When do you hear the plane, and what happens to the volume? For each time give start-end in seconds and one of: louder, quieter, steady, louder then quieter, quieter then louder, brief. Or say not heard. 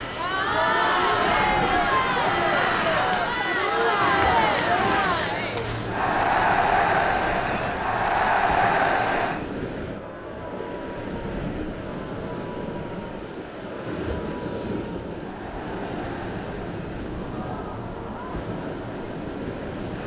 0.0-6.2 steady.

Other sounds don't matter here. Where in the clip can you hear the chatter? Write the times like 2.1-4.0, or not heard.
0.0-20.0.